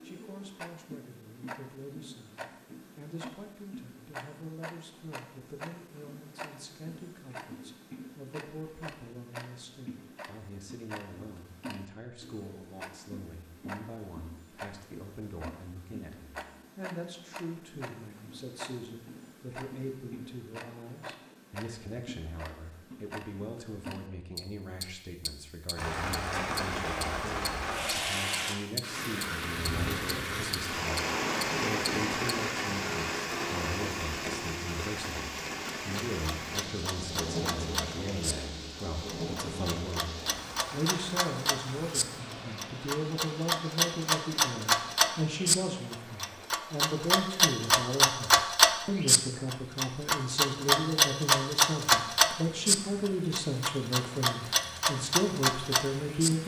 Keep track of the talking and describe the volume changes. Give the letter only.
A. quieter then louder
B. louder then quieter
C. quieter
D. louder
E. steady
D.